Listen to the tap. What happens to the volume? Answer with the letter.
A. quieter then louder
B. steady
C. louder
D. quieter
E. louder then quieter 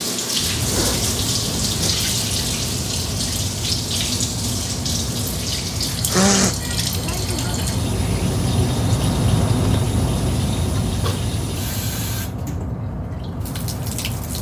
D.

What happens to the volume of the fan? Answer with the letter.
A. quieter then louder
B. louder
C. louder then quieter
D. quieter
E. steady
C.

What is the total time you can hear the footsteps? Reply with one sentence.
You can't hear the footsteps here.